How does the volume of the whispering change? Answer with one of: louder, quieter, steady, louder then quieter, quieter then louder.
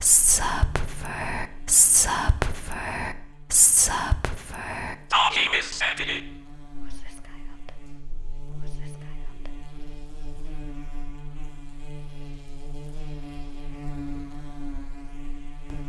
quieter.